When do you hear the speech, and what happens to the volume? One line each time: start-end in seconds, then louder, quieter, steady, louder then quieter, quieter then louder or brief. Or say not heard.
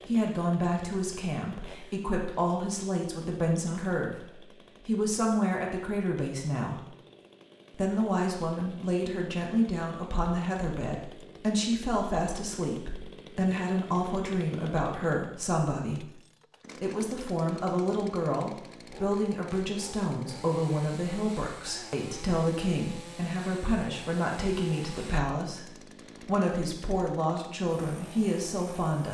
0.1-6.8 steady
7.7-16.1 steady
16.8-29.0 steady.